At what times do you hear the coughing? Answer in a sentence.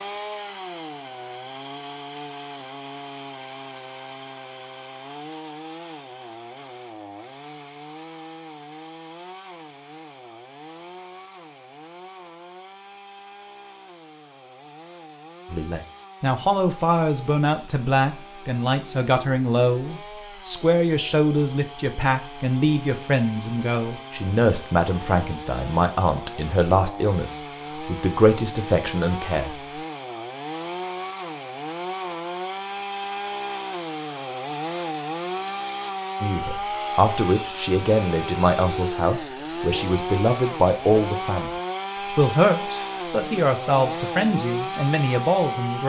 The coughing can't be heard in this clip.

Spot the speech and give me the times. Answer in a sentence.
The speech can be heard from 15.5 to 29.6 s, from 36.2 to 41.5 s and from 42.1 to 45.8 s.